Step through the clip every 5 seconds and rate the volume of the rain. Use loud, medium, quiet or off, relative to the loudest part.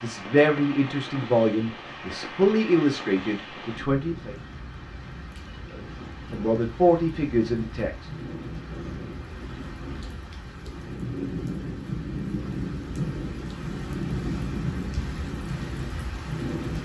medium, medium, loud, loud.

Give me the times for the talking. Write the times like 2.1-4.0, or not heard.
0.0-4.3, 5.7-7.9.